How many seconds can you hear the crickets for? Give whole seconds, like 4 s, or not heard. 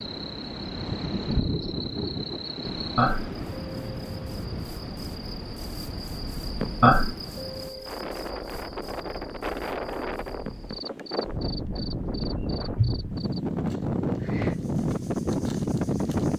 16 s.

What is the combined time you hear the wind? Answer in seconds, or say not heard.
16 s.